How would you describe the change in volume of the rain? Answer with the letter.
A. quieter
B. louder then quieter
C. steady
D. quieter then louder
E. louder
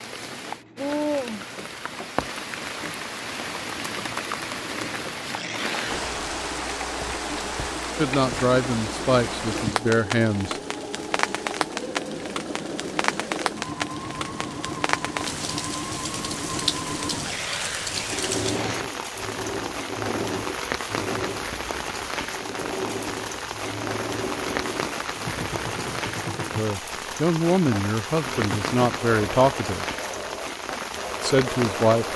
C.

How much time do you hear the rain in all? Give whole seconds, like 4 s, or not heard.
32 s.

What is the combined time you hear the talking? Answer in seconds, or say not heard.
7 s.